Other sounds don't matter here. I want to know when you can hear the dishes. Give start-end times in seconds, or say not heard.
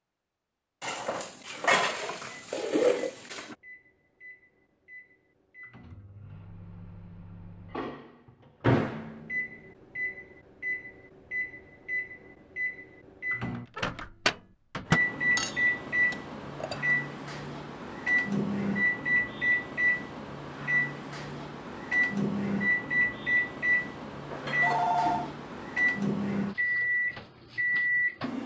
0.8-3.5, 15.3-16.9, 24.3-25.4.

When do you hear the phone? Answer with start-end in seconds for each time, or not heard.
24.6-25.3.